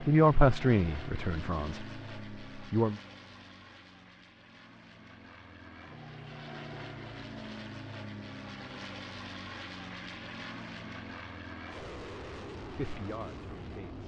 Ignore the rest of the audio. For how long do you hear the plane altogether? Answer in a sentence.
The plane can be heard for 14 seconds in total.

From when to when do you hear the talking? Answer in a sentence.
The talking can be heard from 0.0 to 3.0 s and from 12.6 to 14.0 s.